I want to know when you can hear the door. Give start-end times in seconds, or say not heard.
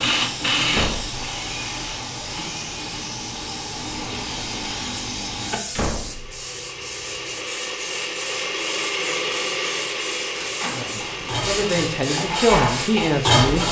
0.7-1.2, 5.7-6.5, 10.3-11.2.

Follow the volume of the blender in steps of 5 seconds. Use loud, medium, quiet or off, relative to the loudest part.
loud, loud, medium.